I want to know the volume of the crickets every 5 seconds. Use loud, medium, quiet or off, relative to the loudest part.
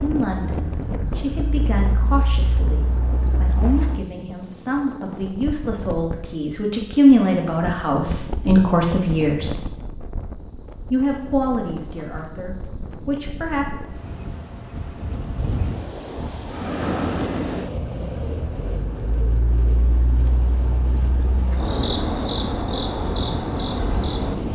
loud, loud, loud, medium, loud.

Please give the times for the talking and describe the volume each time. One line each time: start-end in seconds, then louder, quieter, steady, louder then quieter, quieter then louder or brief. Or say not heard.
0.0-9.6 louder
10.9-13.7 brief.